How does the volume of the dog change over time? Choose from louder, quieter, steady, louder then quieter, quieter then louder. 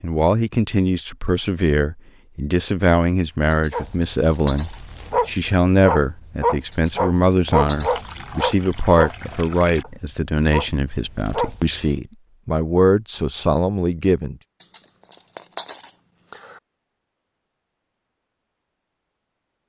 louder then quieter.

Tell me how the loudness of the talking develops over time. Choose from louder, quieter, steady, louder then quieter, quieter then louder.
steady.